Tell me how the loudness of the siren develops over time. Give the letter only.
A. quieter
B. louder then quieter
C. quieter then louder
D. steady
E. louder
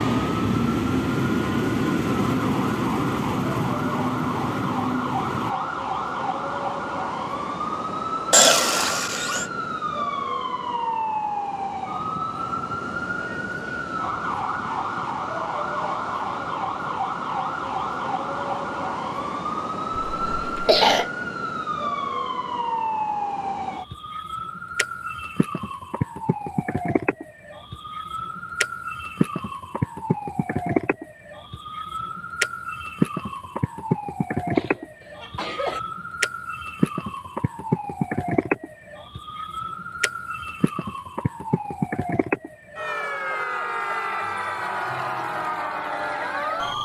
D.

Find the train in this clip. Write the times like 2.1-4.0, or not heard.
0.0-5.5.